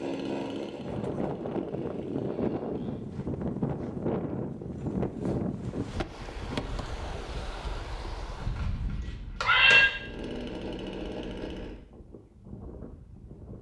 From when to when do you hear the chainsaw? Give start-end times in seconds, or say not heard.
0.0-3.0, 9.9-11.8.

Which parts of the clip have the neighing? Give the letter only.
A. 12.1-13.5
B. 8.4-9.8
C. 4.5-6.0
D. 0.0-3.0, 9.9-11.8
B.